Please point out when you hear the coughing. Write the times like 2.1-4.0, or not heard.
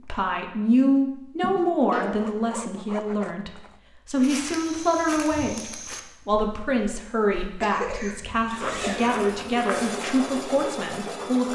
1.4-2.2, 7.6-9.1.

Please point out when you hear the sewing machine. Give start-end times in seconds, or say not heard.
8.8-11.5.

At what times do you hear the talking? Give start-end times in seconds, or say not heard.
0.0-11.5.